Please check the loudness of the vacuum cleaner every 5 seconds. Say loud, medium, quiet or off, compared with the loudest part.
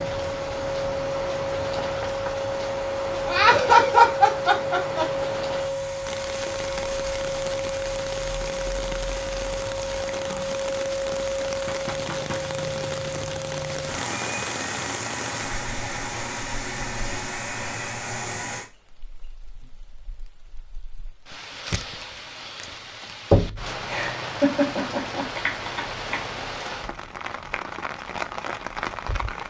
loud, loud, loud, loud, off, off.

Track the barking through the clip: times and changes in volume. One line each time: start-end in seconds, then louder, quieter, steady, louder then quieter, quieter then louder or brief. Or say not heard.
not heard.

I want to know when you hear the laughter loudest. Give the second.
4 s.